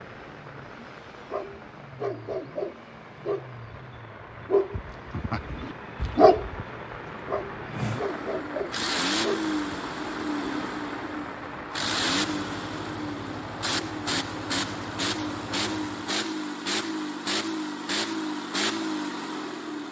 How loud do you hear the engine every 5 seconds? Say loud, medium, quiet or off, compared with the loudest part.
quiet, loud, loud, loud.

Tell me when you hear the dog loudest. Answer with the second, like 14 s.
6 s.